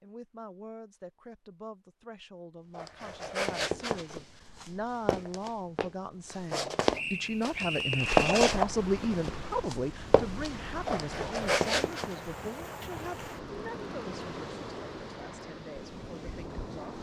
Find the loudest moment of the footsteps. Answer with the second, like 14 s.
8 s.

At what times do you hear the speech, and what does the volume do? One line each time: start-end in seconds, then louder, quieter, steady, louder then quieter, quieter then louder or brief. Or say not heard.
0.0-16.9 louder then quieter.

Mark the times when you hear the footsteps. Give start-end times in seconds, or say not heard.
2.8-12.1.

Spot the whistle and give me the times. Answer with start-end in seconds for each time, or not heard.
6.9-8.3.